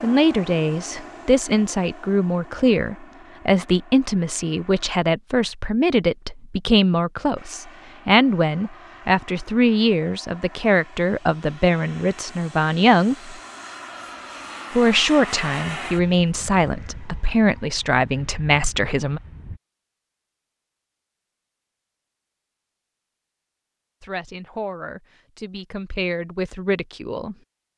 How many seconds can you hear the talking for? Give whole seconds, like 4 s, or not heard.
21 s.